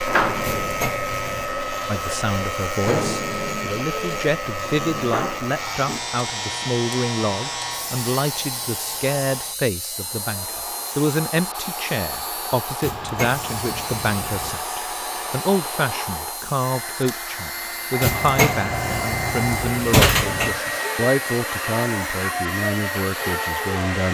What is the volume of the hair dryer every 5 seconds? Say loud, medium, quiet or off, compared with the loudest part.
loud, medium, medium, loud, loud.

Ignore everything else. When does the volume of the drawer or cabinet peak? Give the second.
20 s.